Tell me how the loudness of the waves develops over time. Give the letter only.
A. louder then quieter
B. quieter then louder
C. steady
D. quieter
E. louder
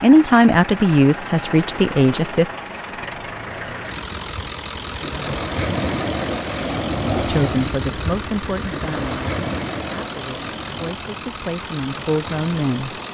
A.